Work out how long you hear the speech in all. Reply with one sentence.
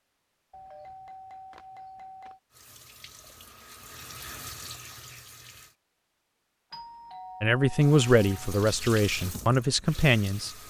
You can hear the speech for 3 seconds altogether.